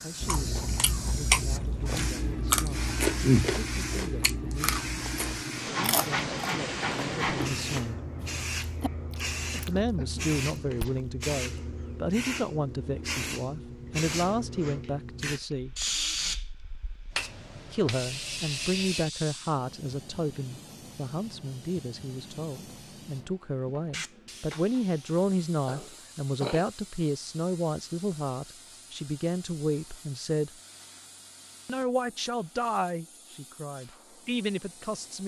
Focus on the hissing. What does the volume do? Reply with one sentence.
The volume of the hissing goes down.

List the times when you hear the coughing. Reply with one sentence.
The coughing can be heard from 9.5 to 10.3 s and from 25.6 to 26.6 s.